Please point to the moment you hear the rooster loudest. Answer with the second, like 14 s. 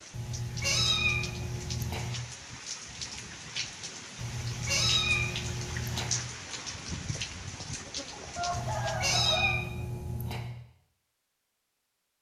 9 s.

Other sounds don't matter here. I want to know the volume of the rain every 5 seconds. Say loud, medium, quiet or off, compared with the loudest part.
loud, loud, off.